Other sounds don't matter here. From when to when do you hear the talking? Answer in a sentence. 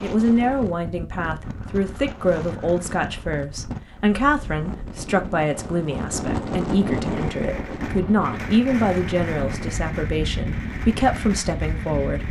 The talking can be heard from 0.0 to 12.2 s.